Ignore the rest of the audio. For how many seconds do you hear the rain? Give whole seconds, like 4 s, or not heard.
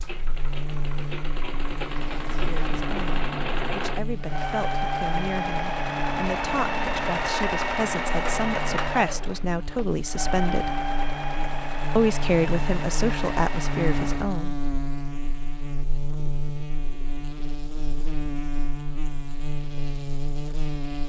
not heard.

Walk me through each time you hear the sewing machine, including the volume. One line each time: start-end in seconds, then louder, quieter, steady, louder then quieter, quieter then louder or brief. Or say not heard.
0.0-14.3 louder then quieter.